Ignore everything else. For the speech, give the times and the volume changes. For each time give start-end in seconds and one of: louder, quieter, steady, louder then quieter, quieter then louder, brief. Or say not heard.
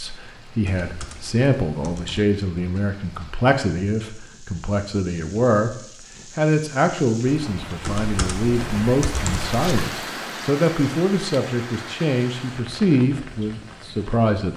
0.0-14.5 steady.